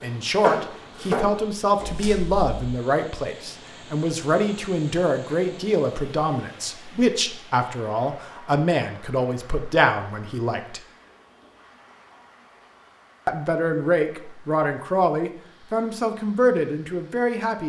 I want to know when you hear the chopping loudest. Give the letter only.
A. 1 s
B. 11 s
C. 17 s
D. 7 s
A.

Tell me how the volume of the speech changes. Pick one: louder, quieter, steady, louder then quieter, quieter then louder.
steady.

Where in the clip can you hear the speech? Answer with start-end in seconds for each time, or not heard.
0.0-10.8, 13.2-17.6.